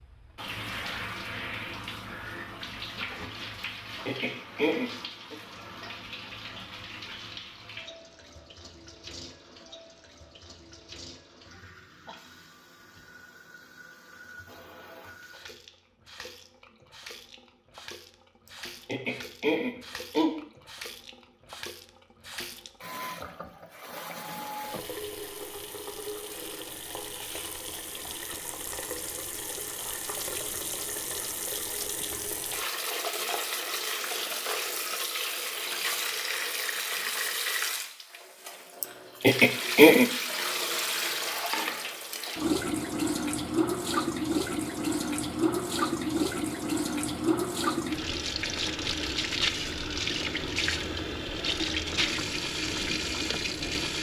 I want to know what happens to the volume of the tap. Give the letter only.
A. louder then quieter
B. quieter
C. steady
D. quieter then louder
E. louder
D.